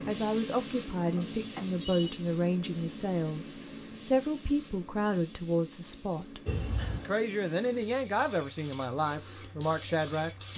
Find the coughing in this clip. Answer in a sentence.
The coughing can be heard from 6.5 to 7.1 s.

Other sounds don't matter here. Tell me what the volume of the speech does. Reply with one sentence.
The volume of the speech stays about the same.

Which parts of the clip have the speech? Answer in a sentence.
You can hear the speech from 0.0 to 6.4 s and from 7.0 to 10.5 s.